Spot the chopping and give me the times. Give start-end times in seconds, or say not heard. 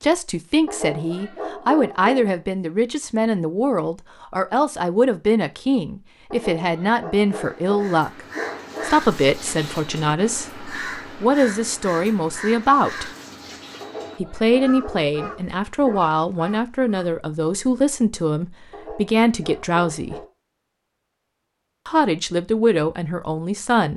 not heard.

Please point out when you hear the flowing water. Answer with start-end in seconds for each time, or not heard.
not heard.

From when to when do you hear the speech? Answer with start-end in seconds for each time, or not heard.
0.0-8.2, 8.8-13.1, 14.2-20.2, 21.9-23.9.